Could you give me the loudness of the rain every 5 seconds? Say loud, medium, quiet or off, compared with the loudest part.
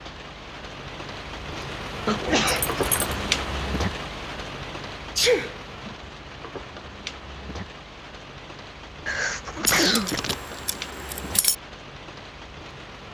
loud, medium, medium.